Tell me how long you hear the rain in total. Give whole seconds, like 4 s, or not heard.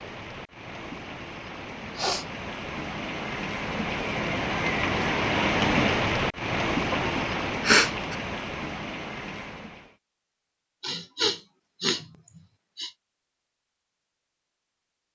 10 s.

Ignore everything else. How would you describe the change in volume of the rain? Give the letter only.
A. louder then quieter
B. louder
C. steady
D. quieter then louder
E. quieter
A.